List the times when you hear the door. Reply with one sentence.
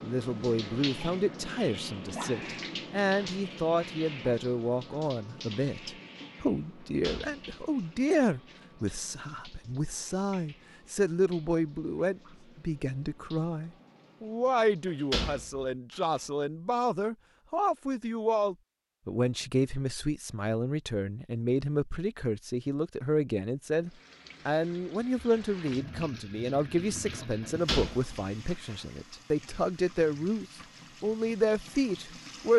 The door can be heard from 6.8 to 7.9 s, from 15.1 to 16.2 s and from 27.4 to 28.8 s.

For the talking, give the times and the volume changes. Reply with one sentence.
You can hear the talking from 0.0 to 32.5 s, at a steady volume.